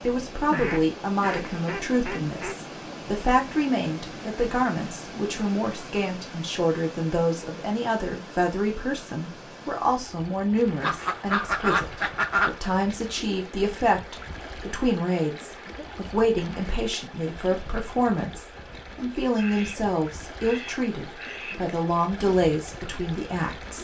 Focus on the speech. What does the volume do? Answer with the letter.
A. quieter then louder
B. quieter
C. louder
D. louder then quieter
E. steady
E.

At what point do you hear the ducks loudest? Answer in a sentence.
The volume of the ducks peaks at 12 seconds.